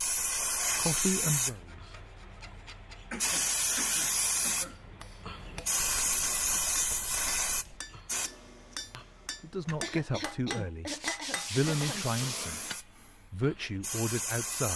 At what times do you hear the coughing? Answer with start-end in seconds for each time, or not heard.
3.1-4.8, 9.7-12.1.